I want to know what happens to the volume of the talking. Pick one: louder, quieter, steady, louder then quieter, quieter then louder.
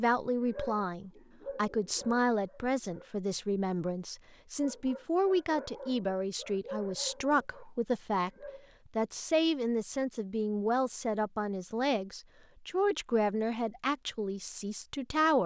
steady.